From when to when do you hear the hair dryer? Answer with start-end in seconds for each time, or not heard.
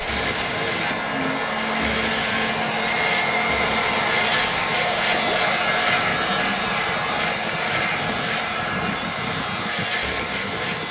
0.0-10.8.